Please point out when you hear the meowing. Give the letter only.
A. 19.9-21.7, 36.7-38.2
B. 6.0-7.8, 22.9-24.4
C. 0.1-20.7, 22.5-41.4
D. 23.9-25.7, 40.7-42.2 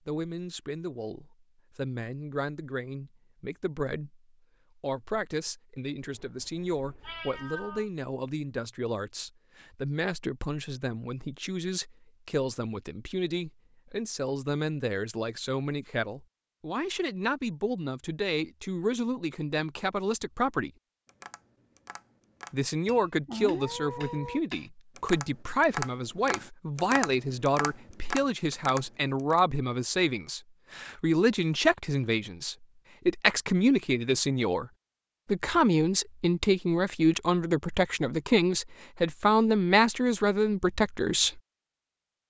B.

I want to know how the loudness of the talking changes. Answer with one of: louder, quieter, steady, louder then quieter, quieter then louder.
louder.